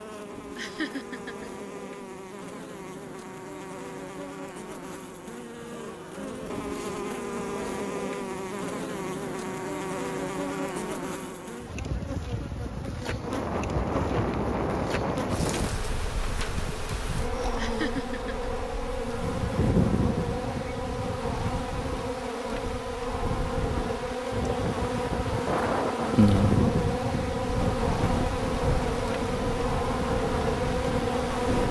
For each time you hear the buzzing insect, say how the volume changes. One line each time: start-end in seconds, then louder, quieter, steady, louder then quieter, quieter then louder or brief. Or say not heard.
0.0-31.6 louder.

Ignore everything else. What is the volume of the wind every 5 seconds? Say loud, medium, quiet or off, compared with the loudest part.
off, off, loud, medium, medium, loud, loud.